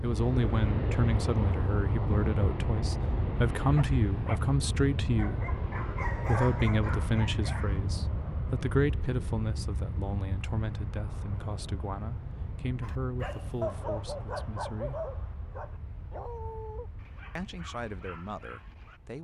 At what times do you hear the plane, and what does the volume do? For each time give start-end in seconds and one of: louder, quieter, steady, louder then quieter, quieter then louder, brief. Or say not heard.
0.0-19.1 quieter.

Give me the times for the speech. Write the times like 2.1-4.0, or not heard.
0.0-5.5, 6.2-15.0, 17.4-19.1.